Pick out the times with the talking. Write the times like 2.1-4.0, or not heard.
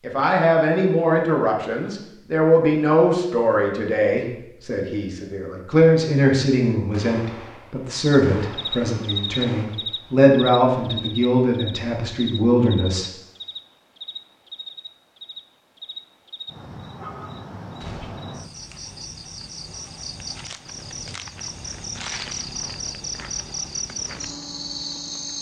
0.0-13.1.